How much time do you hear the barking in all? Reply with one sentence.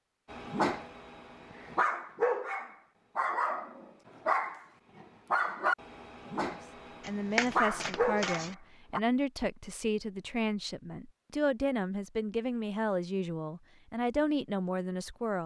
You can hear the barking for 9 seconds altogether.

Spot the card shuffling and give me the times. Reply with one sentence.
The card shuffling can be heard from 7.0 to 8.6 s.